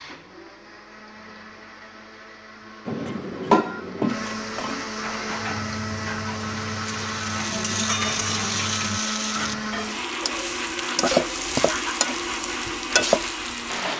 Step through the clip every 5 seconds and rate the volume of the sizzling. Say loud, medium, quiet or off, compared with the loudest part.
off, loud, loud.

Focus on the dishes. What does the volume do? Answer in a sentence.
The loudness of the dishes goes down.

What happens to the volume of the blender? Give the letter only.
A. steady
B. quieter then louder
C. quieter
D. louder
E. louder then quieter
D.